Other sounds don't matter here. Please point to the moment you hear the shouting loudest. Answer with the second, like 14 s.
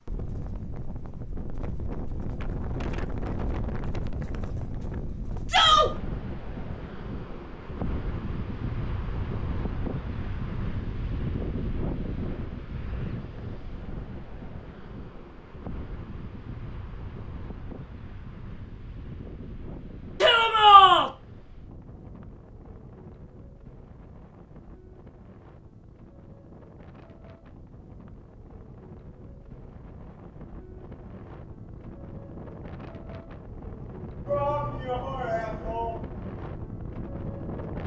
21 s.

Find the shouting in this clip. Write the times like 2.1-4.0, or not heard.
5.5-5.9, 20.2-21.1, 34.2-36.0.